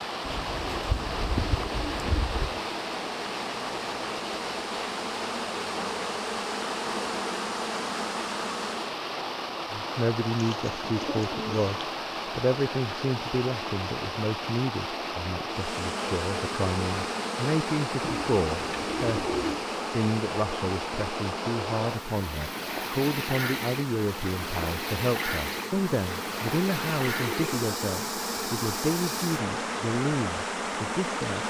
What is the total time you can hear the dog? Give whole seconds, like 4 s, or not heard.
not heard.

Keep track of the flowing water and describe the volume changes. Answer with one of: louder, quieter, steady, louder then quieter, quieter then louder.
steady.